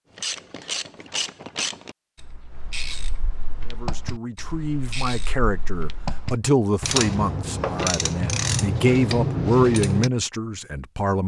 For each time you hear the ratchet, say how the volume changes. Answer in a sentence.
The ratchet can be heard from 0.1 to 10.1 s, getting quieter then louder.